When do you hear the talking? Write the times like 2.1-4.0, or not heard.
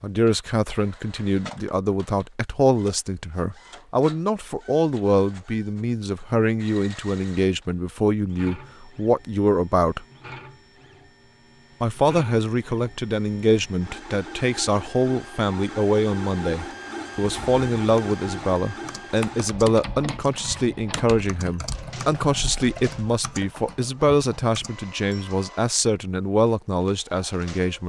0.0-10.1, 11.8-27.8.